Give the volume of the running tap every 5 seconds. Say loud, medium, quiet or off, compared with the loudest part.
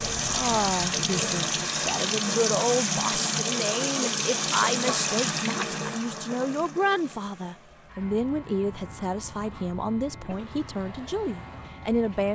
loud, medium, quiet.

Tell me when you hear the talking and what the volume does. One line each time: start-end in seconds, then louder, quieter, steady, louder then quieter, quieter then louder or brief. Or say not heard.
0.2-12.2 steady.